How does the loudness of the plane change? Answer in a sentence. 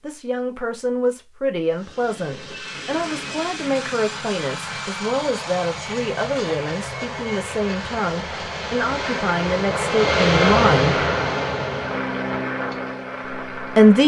The loudness of the plane goes up, then down.